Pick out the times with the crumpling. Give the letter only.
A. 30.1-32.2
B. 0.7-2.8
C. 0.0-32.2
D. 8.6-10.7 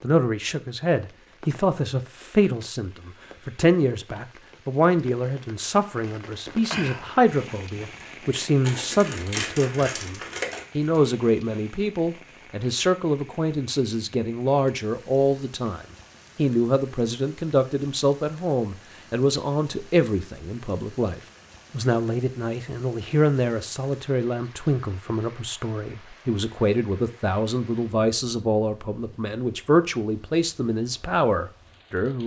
D.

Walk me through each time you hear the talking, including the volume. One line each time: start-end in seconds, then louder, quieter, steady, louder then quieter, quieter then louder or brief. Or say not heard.
0.0-32.2 steady.